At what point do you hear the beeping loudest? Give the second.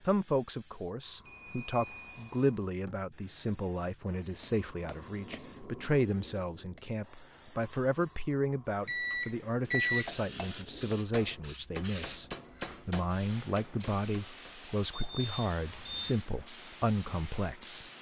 10 s.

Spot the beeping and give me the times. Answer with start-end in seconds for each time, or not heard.
1.2-2.5, 8.8-10.1, 14.9-16.2.